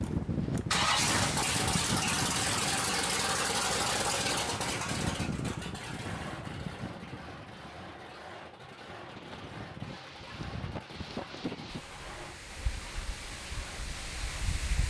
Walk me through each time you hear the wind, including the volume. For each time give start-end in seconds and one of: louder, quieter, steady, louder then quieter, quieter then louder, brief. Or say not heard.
0.0-14.8 quieter.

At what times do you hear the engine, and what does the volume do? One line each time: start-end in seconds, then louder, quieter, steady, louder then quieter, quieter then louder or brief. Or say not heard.
0.0-14.6 quieter.